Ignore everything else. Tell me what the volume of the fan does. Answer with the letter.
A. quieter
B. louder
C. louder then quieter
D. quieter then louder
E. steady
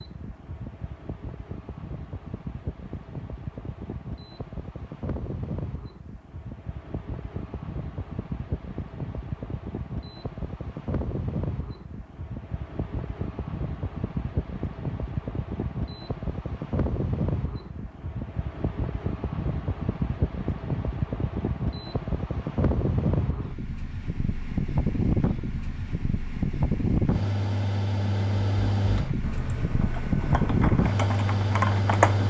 B.